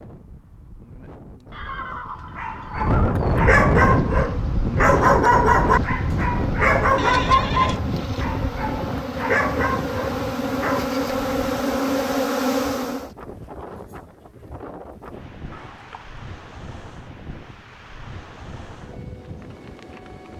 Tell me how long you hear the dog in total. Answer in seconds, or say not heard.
9 s.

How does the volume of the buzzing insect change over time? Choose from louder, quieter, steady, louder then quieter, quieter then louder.
louder.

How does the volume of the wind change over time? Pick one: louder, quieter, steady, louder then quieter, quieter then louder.
quieter.